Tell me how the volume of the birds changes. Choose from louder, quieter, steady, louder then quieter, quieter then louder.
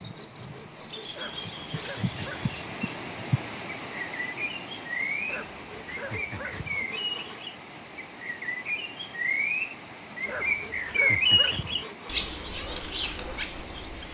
louder then quieter.